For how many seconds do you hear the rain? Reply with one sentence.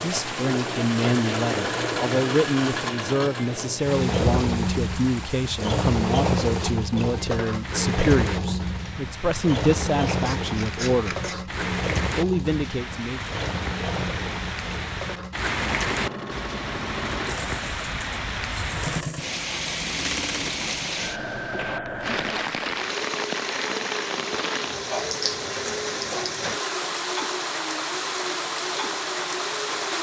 The rain can be heard for 30 seconds in total.